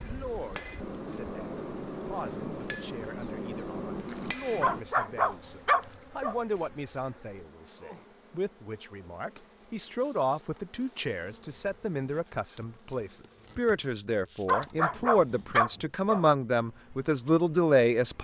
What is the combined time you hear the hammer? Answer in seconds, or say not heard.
5 s.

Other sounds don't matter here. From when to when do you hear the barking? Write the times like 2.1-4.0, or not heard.
4.6-6.3, 14.4-16.2.